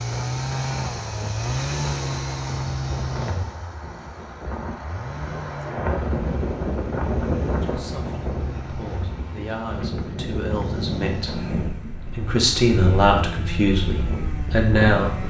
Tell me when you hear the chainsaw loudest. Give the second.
2 s.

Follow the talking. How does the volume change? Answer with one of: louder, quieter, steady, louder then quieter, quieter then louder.
louder.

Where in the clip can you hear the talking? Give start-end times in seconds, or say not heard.
7.6-15.2.